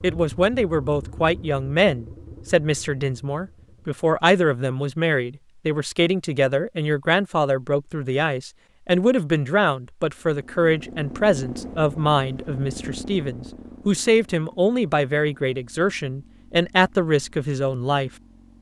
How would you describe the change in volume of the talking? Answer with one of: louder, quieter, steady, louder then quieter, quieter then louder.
steady.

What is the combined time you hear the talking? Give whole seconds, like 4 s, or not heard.
18 s.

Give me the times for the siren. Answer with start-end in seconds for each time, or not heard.
not heard.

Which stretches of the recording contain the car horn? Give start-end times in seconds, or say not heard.
not heard.